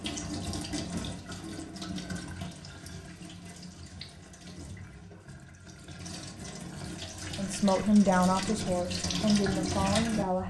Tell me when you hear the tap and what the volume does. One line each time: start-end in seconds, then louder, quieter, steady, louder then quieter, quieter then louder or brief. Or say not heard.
0.0-10.4 quieter then louder.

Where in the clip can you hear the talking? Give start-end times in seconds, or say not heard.
7.3-10.4.